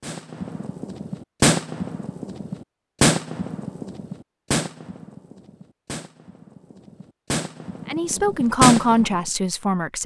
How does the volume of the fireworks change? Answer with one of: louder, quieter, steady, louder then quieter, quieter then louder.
quieter then louder.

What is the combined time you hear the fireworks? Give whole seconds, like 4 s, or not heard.
9 s.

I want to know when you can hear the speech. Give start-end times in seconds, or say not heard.
7.8-10.0.